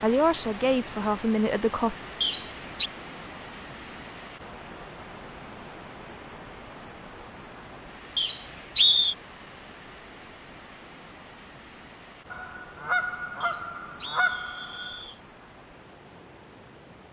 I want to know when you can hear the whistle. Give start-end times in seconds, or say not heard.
2.2-2.9, 8.2-9.2, 13.4-15.2.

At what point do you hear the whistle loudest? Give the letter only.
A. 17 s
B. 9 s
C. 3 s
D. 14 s
B.